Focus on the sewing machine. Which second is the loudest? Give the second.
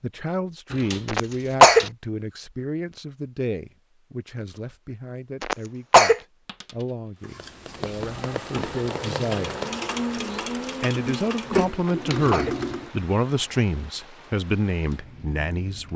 12 s.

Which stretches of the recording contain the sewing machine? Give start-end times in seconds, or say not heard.
7.2-12.9.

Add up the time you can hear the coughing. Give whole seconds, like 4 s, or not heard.
2 s.